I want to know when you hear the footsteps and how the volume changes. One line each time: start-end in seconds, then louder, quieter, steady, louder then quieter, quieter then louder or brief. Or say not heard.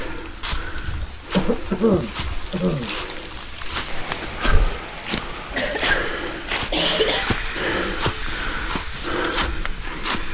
0.0-10.3 louder.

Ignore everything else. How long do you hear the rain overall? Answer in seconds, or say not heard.
8 s.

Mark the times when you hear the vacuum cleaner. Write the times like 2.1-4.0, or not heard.
6.9-10.3.